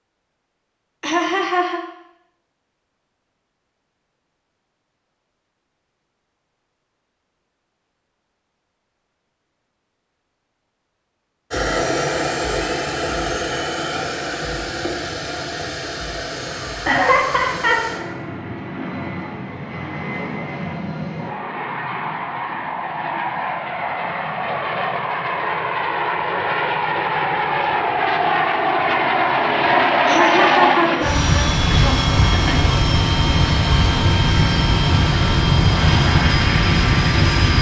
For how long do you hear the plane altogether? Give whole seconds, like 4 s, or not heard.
26 s.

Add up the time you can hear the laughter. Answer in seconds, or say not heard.
4 s.